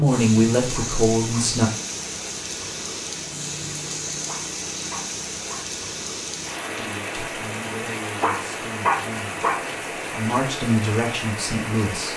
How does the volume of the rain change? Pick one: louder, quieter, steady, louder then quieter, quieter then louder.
steady.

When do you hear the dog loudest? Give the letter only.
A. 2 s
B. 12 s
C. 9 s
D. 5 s
C.